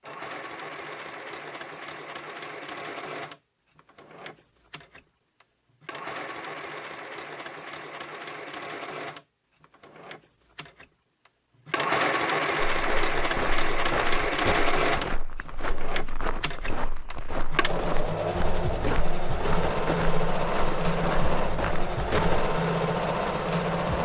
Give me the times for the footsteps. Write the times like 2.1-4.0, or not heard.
12.7-22.4.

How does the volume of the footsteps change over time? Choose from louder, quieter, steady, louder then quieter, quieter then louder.
steady.